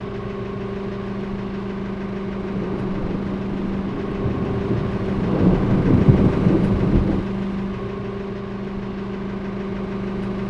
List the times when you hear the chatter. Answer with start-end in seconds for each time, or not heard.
not heard.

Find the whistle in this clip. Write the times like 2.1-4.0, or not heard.
not heard.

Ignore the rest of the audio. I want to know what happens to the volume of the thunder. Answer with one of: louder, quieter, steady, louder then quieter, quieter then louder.
louder.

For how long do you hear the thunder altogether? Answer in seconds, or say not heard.
5 s.